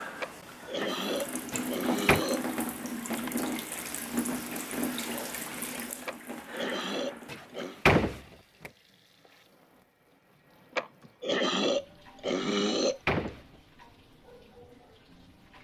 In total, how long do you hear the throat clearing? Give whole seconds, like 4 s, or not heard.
6 s.